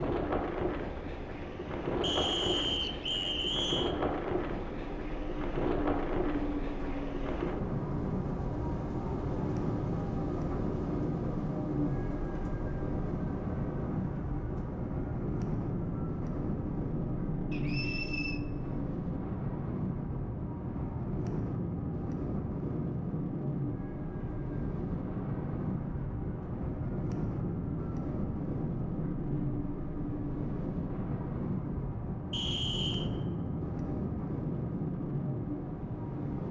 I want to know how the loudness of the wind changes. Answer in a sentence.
The loudness of the wind stays about the same.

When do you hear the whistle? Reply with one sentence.
You can hear the whistle from 2.0 to 4.0 s, from 17.5 to 18.4 s and from 32.3 to 33.1 s.